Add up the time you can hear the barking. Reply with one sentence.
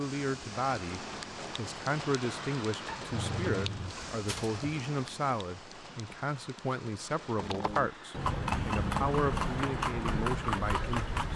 The barking can be heard for 2 seconds in total.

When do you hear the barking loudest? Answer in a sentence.
The volume of the barking peaks at 3 seconds.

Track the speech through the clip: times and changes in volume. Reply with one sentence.
The speech can be heard from 0.0 to 11.2 s, at a steady volume.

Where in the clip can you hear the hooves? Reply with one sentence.
The hooves can be heard from 7.3 to 11.3 s.